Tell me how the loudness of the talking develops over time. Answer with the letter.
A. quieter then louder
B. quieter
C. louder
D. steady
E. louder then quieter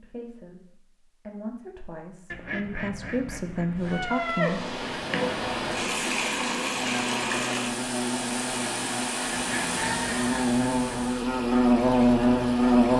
C.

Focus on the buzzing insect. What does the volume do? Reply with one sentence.
The volume of the buzzing insect goes up.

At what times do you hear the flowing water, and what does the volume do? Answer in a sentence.
You can hear the flowing water from 3.8 to 12.9 s, getting quieter.